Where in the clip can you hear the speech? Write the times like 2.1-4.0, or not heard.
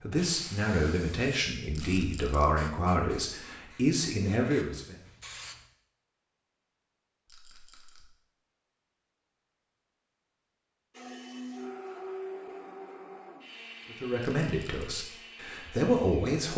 0.0-5.0, 13.9-16.5.